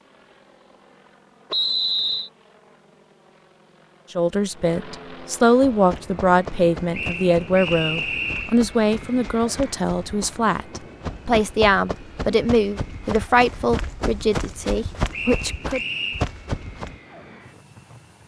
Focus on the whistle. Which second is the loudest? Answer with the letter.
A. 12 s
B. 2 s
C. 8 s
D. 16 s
B.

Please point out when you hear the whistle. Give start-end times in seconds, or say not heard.
1.5-2.3, 6.9-8.6, 15.1-16.2.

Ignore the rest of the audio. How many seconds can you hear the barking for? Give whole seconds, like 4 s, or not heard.
not heard.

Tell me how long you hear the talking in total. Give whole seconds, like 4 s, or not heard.
12 s.